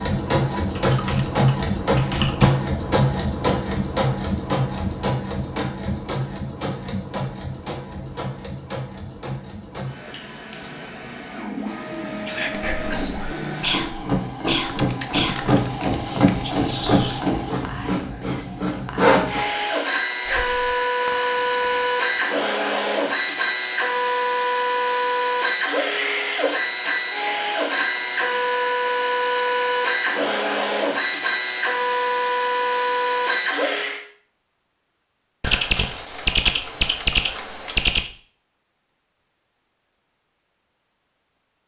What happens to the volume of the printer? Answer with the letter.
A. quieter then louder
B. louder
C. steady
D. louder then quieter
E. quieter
A.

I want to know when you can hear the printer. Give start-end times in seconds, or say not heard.
0.0-34.0.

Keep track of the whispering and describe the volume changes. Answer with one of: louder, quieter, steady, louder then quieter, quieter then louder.
quieter.